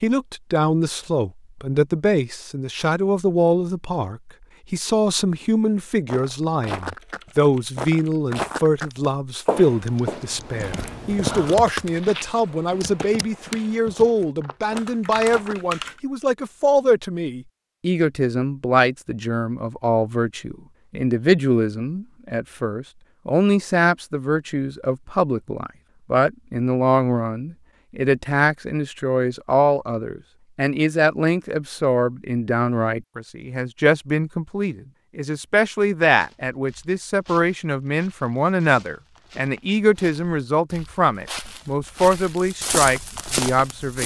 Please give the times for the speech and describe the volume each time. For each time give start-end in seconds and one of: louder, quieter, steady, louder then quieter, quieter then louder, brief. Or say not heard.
0.0-44.0 steady.